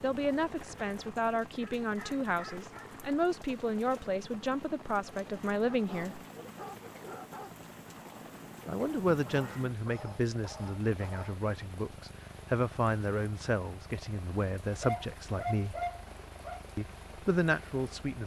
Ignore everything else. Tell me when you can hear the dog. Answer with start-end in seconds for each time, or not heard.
1.6-2.9, 5.7-7.5, 9.2-11.3, 14.7-16.6.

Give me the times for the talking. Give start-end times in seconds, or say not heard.
0.0-6.2, 8.7-15.8, 16.8-18.2.